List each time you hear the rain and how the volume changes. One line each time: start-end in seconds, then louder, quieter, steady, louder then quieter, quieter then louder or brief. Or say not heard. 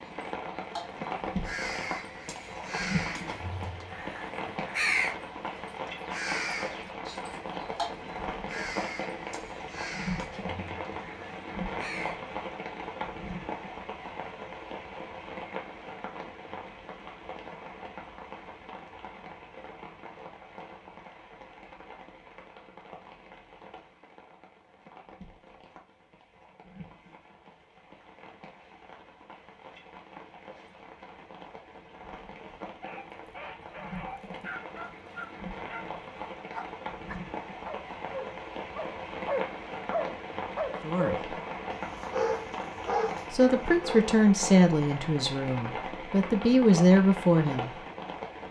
0.0-48.4 quieter then louder.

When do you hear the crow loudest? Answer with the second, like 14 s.
5 s.